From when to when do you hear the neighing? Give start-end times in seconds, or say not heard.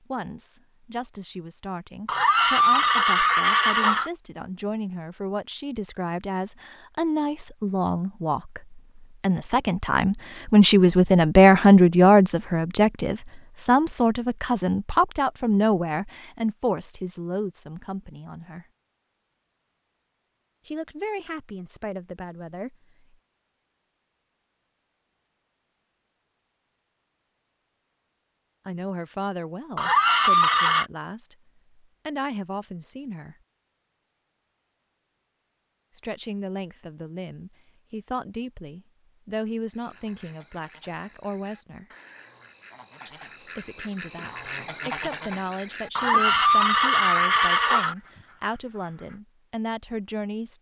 2.0-4.1, 29.8-30.9, 46.0-48.0.